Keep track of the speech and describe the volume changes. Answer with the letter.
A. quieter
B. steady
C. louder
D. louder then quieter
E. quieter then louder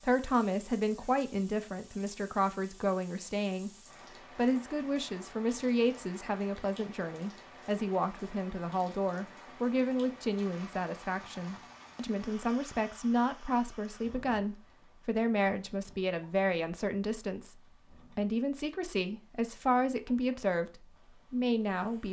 B.